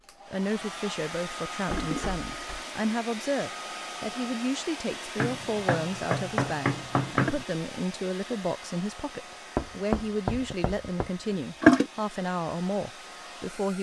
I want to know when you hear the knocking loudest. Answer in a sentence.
The loudest moment of the knocking is at 7 seconds.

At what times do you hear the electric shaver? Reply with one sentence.
The electric shaver can't be heard in this clip.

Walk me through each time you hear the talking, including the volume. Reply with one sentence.
You can hear the talking from 0.2 to 13.7 s, at a steady volume.